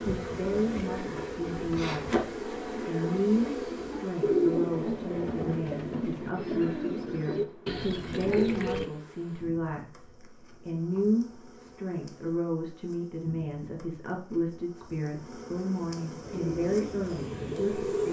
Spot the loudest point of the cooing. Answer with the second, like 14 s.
4 s.